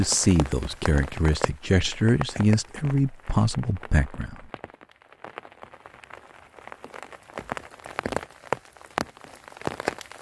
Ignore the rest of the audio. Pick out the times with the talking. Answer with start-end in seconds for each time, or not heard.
0.0-4.5.